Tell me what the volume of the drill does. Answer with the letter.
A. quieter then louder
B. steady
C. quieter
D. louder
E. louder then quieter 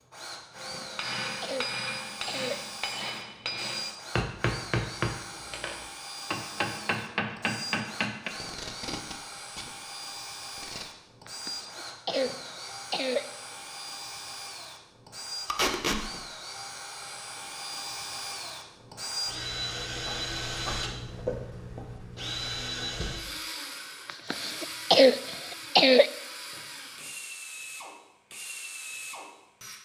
E.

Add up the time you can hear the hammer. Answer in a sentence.
The hammer can be heard for 8 seconds in total.